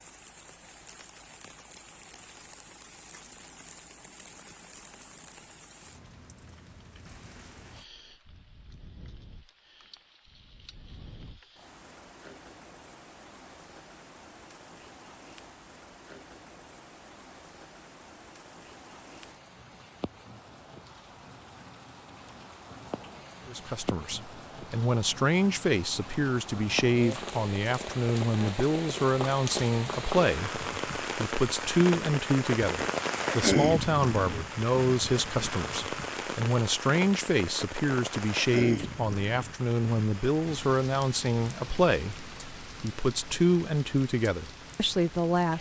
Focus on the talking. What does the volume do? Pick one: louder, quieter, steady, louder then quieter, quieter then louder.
steady.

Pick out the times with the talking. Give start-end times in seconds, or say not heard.
23.4-45.5.